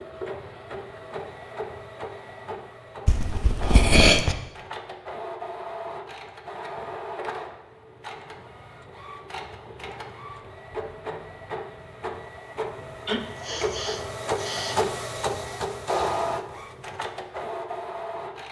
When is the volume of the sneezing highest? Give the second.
4 s.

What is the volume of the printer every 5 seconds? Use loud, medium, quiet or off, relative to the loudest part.
medium, medium, loud, loud.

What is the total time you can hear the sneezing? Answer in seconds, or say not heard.
3 s.